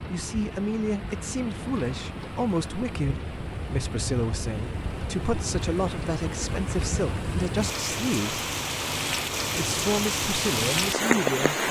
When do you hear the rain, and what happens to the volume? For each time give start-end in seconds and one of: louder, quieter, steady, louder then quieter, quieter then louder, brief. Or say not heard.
0.0-11.6 louder.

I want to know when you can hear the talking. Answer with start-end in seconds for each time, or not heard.
0.1-8.4, 9.6-11.6.